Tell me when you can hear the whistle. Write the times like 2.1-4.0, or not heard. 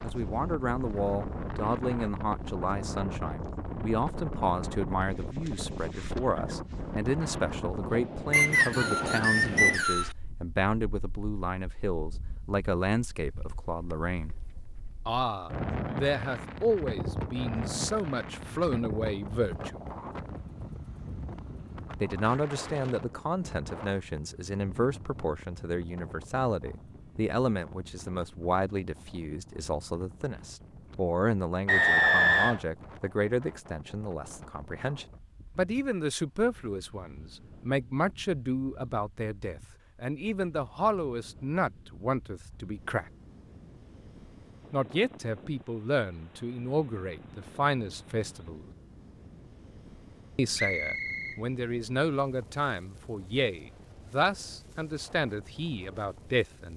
8.3-10.2, 31.6-32.6, 50.5-51.4.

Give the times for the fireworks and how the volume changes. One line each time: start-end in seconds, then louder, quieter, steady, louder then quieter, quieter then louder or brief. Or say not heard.
not heard.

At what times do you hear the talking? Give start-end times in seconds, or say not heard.
0.0-14.3, 15.1-19.8, 22.0-43.1, 44.7-48.6, 50.4-56.7.